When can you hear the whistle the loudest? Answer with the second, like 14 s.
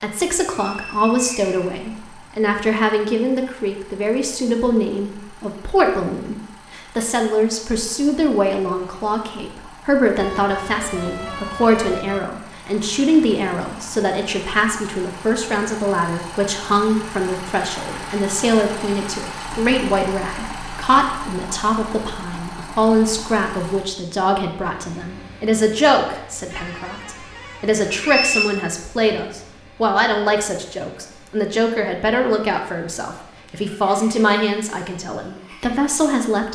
28 s.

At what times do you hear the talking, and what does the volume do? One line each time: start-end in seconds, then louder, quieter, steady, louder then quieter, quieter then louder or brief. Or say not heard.
0.0-36.5 steady.